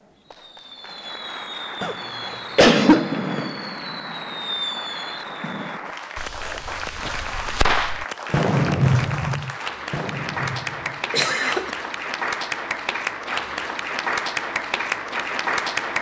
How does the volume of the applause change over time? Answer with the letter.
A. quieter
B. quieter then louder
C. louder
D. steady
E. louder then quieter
C.